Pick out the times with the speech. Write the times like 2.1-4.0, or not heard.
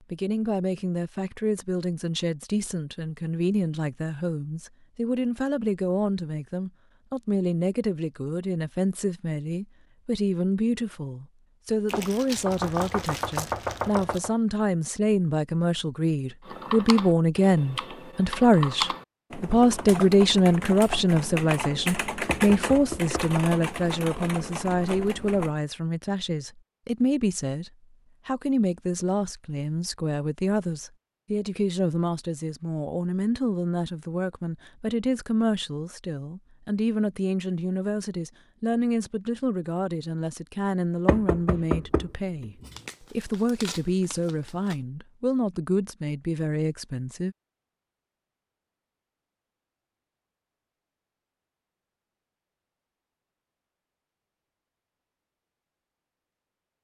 0.1-47.4.